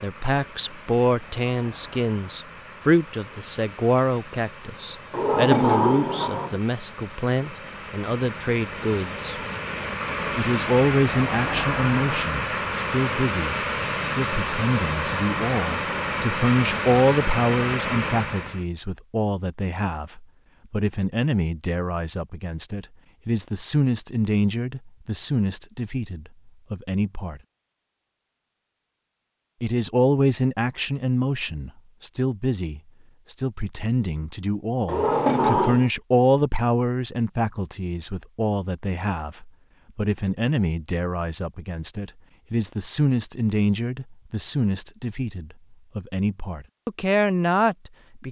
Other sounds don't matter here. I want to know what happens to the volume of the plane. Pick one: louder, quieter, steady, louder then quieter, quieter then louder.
louder.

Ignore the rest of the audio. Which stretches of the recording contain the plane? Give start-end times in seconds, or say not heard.
0.0-18.6.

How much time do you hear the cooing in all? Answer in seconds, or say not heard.
not heard.